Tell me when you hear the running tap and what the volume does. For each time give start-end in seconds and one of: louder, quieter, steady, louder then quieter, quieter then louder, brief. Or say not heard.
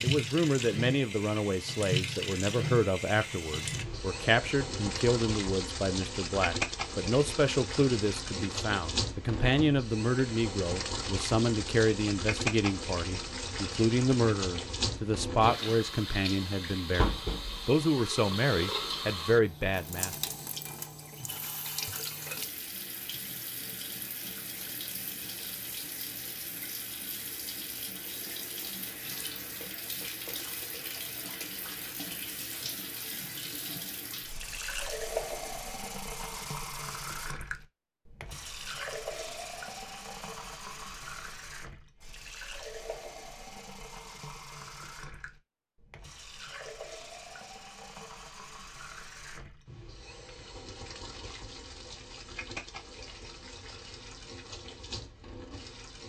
0.0-56.0 quieter.